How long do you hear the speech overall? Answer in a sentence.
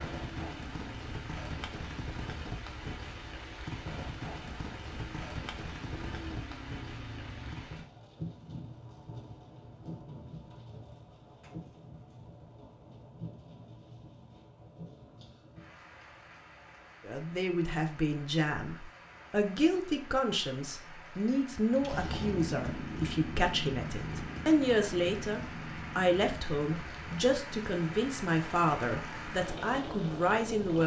The speech can be heard for 14 seconds in total.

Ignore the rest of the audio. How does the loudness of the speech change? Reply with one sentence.
The volume of the speech stays about the same.